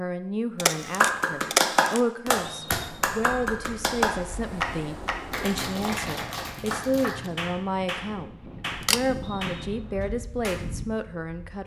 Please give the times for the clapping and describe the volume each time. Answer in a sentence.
You can hear the clapping from 1.0 to 10.7 s, getting quieter.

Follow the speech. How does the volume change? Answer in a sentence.
The volume of the speech stays about the same.